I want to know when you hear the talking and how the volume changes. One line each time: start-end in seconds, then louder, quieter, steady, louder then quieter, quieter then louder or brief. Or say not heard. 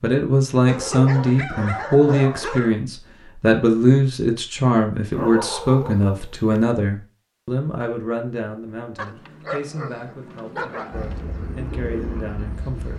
0.0-12.9 quieter.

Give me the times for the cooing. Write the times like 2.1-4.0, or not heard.
10.9-12.9.